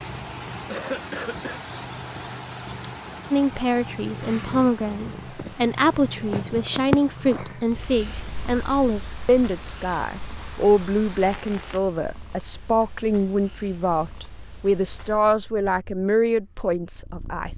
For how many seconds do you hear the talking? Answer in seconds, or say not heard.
14 s.